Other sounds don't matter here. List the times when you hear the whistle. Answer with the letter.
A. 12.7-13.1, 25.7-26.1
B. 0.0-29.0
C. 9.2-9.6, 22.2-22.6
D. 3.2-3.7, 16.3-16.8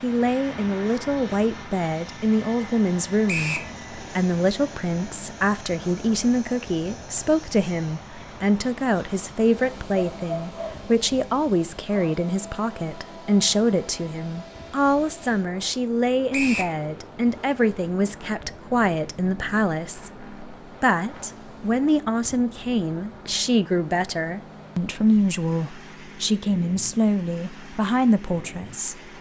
D.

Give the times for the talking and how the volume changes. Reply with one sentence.
The talking can be heard from 0.0 to 29.0 s, at a steady volume.